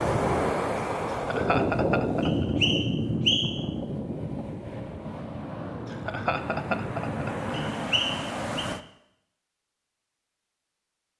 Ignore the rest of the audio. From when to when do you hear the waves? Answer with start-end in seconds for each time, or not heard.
0.0-8.8.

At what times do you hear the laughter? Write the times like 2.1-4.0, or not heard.
1.1-2.5, 5.8-7.5.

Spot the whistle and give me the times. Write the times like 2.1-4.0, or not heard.
2.2-3.6, 7.5-8.7.